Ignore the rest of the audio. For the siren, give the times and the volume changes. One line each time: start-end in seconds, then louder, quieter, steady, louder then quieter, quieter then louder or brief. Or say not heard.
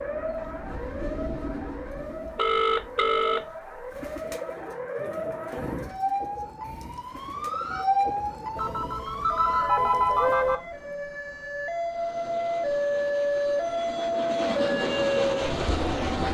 0.0-16.2 louder.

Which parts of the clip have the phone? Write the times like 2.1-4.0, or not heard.
2.4-3.9, 8.6-10.6.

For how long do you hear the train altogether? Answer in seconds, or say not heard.
8 s.